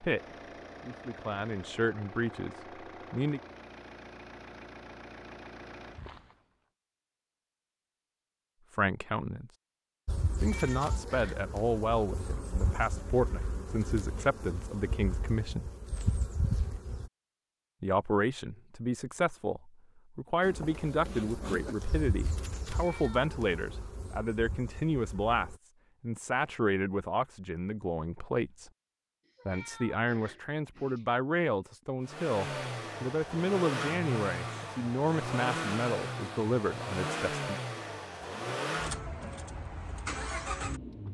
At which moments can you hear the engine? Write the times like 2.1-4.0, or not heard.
0.0-6.5, 32.0-41.0.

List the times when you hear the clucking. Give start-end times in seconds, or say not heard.
not heard.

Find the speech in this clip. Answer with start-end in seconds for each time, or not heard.
0.0-3.4, 8.7-9.5, 10.4-15.7, 17.8-28.7, 29.4-37.6.